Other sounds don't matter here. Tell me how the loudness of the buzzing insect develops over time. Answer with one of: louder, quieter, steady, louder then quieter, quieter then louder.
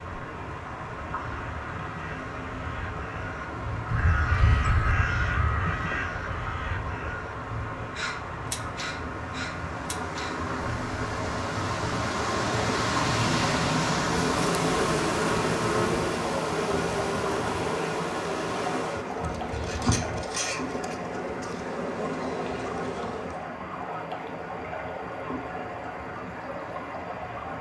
quieter.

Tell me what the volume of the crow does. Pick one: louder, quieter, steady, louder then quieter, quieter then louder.
louder then quieter.